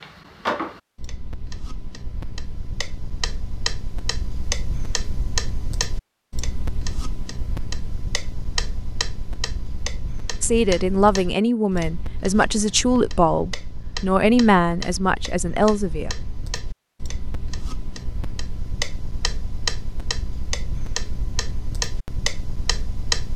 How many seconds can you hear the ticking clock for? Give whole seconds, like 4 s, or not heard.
23 s.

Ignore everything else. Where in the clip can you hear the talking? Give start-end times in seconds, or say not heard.
10.4-16.1.